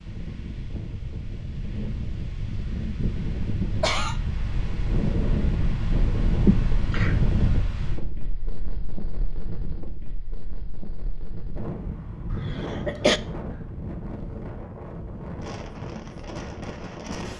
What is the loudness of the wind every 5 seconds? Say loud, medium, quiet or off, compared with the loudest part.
medium, loud, medium, medium.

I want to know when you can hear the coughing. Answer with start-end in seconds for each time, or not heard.
3.0-4.2, 6.5-7.2, 12.3-13.2.